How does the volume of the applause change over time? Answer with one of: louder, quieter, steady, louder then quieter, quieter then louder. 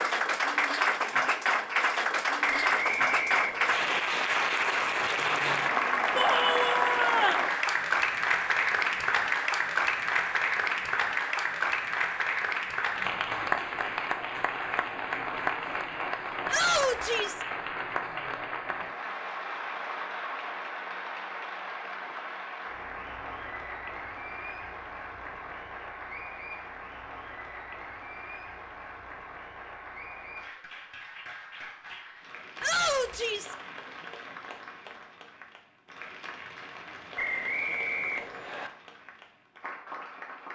quieter.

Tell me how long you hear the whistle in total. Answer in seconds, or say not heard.
3 s.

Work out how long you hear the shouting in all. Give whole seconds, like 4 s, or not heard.
3 s.